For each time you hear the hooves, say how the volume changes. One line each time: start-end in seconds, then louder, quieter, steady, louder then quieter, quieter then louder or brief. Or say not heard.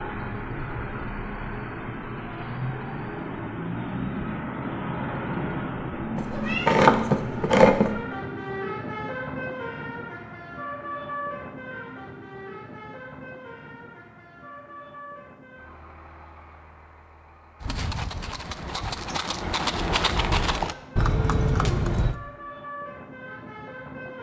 17.6-22.1 louder.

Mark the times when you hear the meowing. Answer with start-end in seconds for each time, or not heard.
6.2-7.9.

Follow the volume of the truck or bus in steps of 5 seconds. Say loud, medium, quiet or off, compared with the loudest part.
loud, loud, medium, quiet, medium.